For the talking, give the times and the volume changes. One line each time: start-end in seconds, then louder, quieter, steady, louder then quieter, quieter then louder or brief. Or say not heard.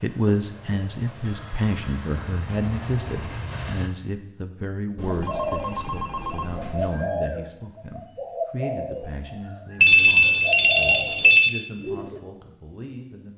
0.0-13.3 quieter.